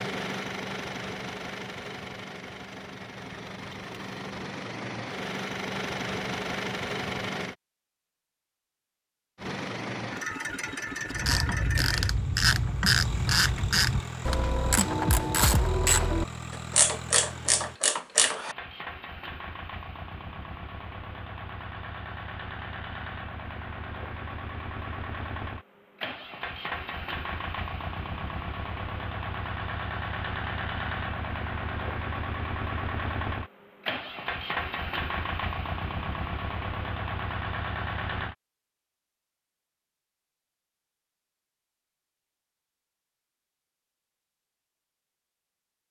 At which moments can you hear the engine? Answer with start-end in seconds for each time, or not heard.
0.0-7.5, 9.3-38.4.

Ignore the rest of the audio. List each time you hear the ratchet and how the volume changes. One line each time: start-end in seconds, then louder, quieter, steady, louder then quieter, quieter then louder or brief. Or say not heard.
11.1-18.6 steady.